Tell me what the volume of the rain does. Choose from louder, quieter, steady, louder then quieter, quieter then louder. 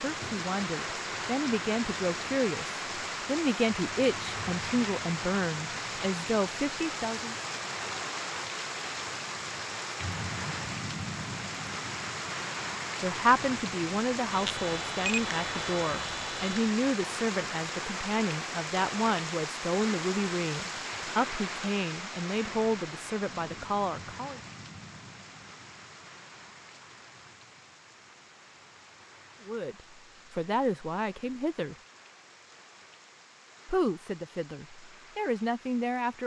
quieter.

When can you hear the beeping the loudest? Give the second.
15 s.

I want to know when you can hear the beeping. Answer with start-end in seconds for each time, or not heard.
14.3-16.6.